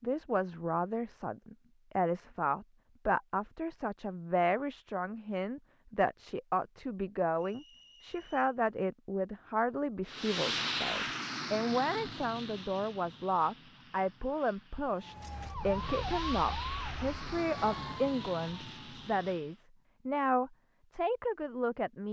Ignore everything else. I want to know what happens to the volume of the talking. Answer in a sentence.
The volume of the talking stays about the same.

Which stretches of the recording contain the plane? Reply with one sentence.
The plane can be heard from 10.1 to 19.4 s.